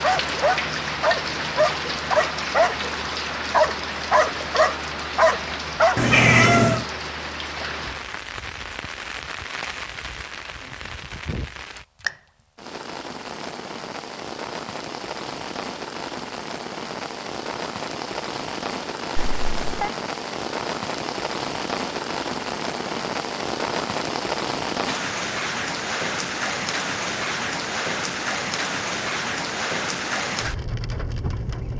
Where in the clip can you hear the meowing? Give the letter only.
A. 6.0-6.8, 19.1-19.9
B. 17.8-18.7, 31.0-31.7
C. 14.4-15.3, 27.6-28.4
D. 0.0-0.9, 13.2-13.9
A.